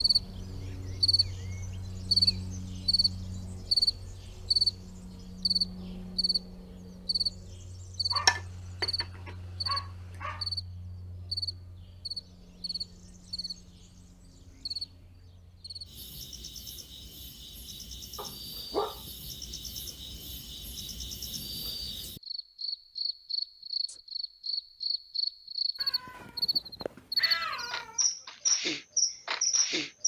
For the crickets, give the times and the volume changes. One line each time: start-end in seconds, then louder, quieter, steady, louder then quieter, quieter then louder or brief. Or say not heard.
0.0-30.0 quieter then louder.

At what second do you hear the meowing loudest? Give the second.
27 s.